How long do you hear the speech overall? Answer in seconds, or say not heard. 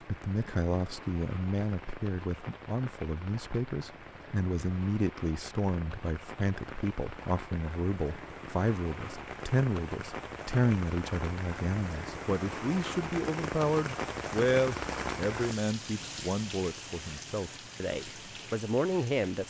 19 s.